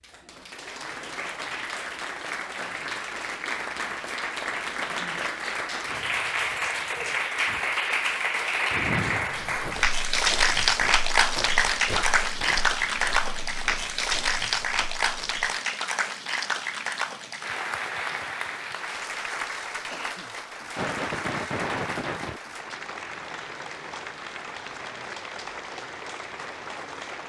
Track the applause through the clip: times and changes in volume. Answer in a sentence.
The applause can be heard from 0.0 to 27.2 s, getting louder then quieter.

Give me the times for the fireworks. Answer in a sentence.
The fireworks can be heard from 20.8 to 22.4 s.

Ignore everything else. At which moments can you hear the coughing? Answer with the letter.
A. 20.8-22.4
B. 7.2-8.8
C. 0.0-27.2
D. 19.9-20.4
D.